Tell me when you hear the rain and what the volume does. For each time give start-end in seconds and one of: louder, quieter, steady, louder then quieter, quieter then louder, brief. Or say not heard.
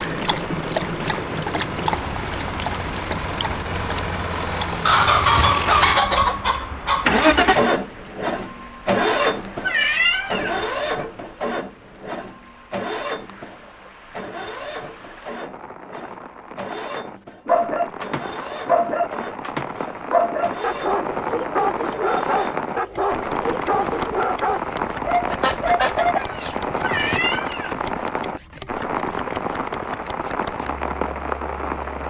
0.0-32.0 quieter then louder.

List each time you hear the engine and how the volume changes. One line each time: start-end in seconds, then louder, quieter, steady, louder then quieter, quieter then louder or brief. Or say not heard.
0.0-31.8 louder then quieter.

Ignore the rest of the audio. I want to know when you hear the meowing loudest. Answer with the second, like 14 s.
10 s.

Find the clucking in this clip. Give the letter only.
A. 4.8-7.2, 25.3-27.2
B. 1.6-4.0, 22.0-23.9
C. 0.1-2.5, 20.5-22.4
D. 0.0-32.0
A.